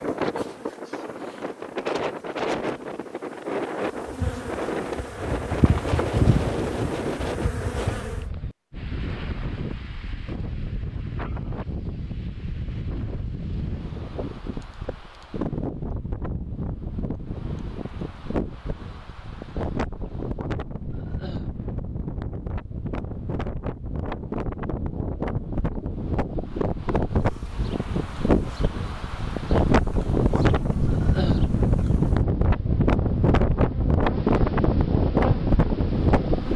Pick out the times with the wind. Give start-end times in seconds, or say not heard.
0.0-36.5.